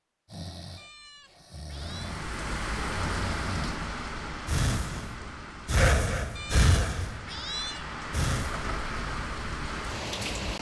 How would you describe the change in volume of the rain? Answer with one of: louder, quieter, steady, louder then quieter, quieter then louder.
quieter then louder.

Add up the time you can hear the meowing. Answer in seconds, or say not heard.
3 s.